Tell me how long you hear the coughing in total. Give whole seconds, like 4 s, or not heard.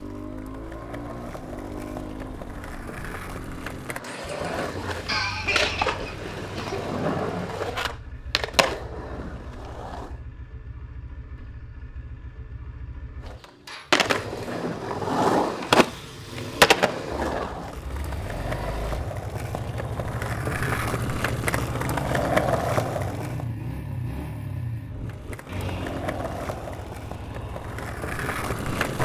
2 s.